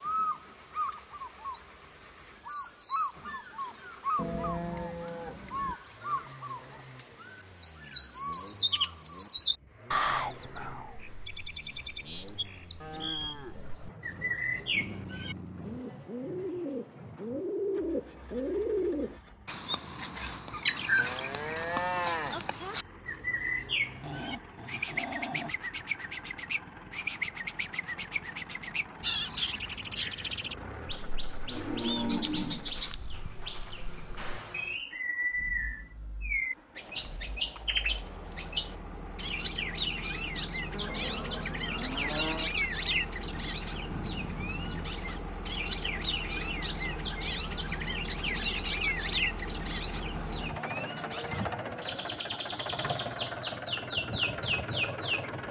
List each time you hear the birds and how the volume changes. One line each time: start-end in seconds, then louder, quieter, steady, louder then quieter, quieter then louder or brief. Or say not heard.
0.0-55.3 steady.